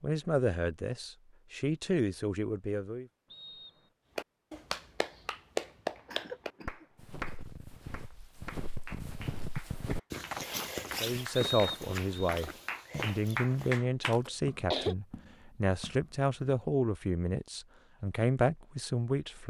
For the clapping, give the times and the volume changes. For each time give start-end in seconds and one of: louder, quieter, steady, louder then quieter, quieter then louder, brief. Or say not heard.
4.2-14.2 quieter then louder.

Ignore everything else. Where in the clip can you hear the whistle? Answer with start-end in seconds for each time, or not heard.
3.3-3.9, 11.3-12.3.